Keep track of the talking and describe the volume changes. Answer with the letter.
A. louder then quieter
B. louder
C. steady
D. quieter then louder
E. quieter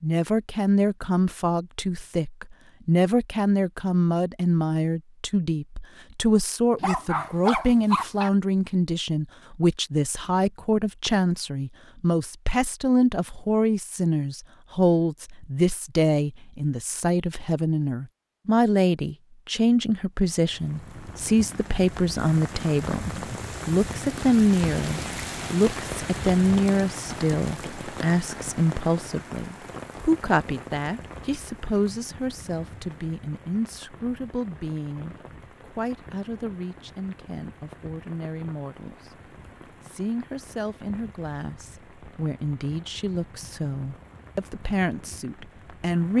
E.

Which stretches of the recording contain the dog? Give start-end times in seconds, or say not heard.
6.8-8.3.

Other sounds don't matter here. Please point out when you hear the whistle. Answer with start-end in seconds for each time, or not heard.
not heard.